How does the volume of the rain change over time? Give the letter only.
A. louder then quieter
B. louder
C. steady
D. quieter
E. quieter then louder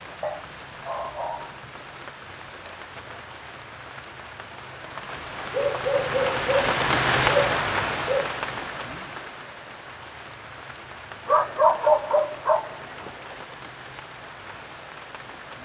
A.